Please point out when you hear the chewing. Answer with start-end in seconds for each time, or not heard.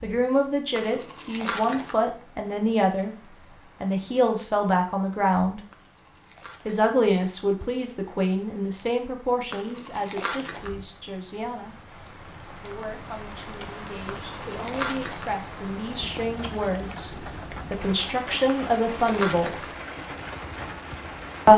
0.8-1.9, 5.7-6.8, 9.5-10.7, 14.1-15.3, 18.4-19.7.